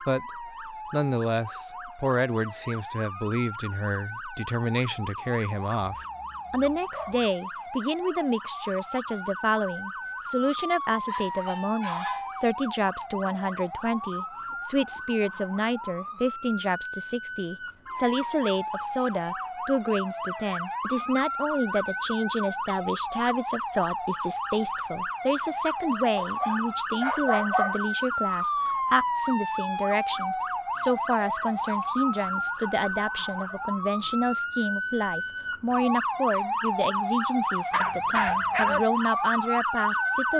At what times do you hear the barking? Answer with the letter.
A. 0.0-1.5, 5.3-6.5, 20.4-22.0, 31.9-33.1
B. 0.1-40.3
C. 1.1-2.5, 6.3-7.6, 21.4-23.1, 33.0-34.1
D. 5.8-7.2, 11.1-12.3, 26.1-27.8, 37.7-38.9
D.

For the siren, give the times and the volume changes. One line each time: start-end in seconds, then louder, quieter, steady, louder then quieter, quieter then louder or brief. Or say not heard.
0.0-40.3 louder.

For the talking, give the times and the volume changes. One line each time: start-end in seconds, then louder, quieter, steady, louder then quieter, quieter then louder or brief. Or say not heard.
0.1-40.3 steady.